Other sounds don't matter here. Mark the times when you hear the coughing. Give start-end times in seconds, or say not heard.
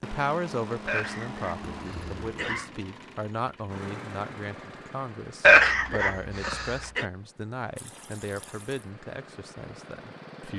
0.8-2.7, 5.4-7.0.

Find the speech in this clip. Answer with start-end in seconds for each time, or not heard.
0.0-10.5.